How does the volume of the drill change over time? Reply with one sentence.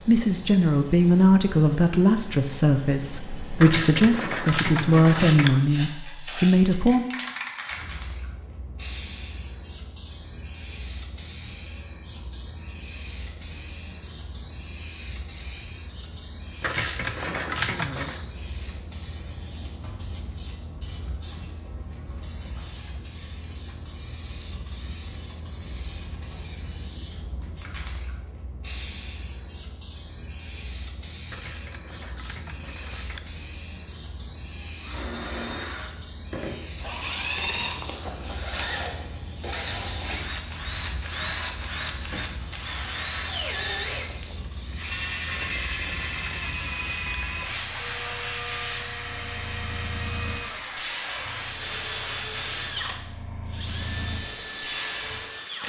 The loudness of the drill stays about the same.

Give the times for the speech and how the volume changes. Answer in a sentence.
The speech can be heard from 0.1 to 7.0 s, at a steady volume.